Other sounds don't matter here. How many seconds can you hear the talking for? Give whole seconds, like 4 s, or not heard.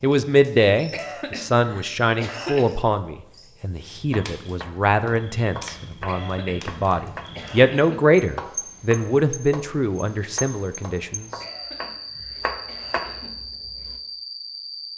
11 s.